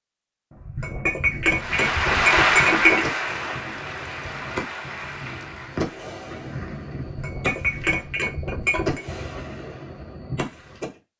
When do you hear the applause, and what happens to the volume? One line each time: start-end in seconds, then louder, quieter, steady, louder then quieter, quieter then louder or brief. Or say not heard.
1.5-6.1 quieter.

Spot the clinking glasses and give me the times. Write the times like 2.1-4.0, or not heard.
0.6-3.0, 7.0-9.0.